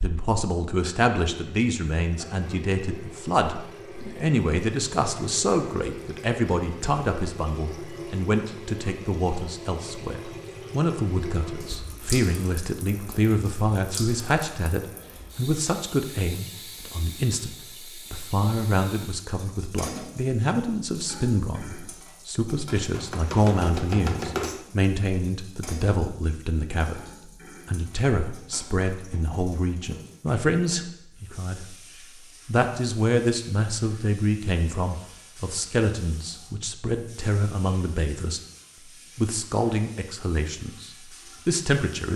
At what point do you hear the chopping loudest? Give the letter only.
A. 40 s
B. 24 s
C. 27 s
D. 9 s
B.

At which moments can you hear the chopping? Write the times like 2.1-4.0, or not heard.
22.9-24.6.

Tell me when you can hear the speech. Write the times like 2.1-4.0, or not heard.
0.0-31.8, 32.5-38.4, 39.1-42.1.